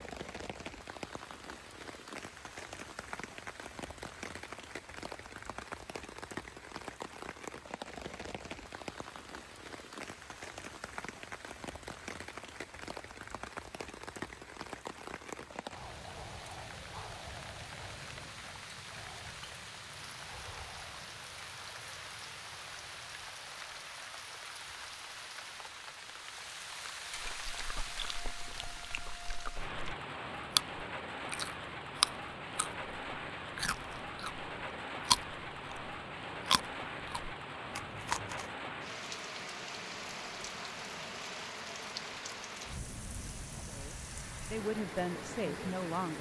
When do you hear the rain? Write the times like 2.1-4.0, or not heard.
0.0-46.1.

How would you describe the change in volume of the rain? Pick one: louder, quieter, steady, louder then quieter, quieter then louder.
steady.